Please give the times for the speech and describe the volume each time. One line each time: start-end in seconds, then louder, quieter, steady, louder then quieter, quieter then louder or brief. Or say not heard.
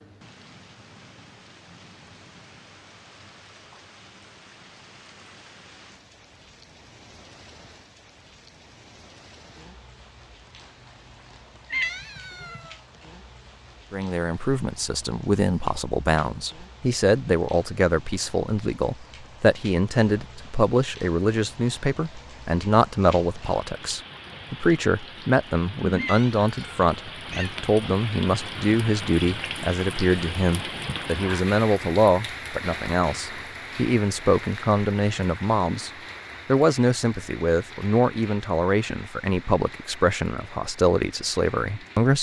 13.9-42.1 steady.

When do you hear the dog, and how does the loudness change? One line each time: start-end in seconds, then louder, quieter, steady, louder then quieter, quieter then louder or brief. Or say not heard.
not heard.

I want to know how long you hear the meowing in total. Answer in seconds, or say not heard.
3 s.